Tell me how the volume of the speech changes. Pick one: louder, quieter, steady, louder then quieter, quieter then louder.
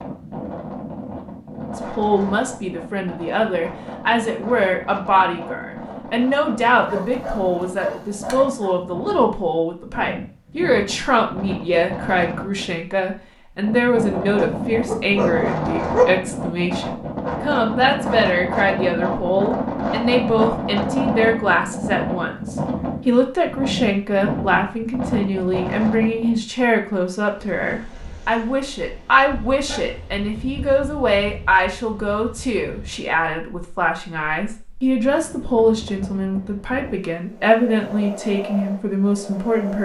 steady.